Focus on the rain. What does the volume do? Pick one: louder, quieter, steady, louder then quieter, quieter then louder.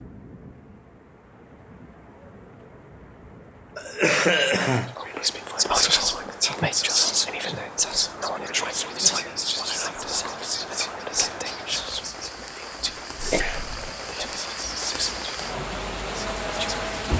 louder.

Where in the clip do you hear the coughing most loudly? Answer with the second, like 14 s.
4 s.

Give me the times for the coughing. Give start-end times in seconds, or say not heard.
3.8-5.0, 13.2-14.1.